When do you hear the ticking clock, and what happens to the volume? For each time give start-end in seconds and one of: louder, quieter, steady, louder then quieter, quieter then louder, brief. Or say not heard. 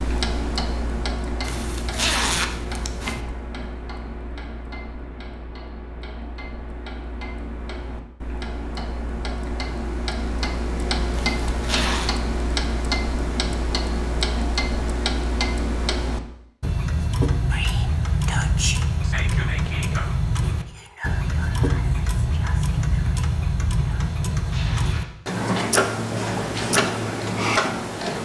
0.0-28.1 louder.